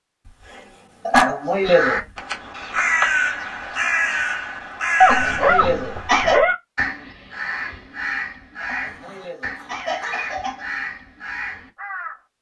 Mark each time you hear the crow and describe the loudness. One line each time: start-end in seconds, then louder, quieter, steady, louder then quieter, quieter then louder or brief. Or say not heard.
1.6-12.2 quieter.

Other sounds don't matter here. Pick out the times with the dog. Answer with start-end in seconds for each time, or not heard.
0.5-2.0, 5.0-6.5, 8.8-10.2.